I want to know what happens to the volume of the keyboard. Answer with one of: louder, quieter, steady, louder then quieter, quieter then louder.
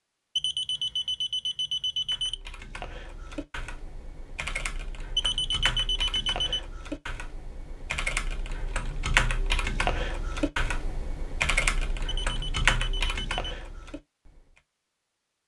louder.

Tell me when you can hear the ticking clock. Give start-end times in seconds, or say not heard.
not heard.